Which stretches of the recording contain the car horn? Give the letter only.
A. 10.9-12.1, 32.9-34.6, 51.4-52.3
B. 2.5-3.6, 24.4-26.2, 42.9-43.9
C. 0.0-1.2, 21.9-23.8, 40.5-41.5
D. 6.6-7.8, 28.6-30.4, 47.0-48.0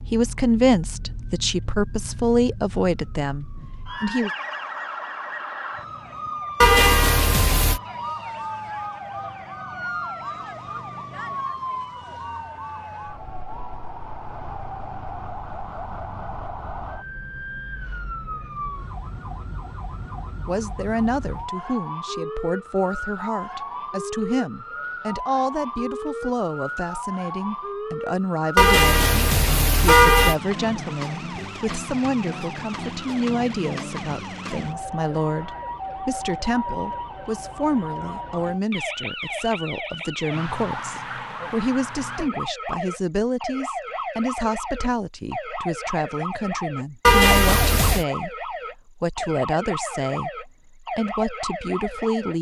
D.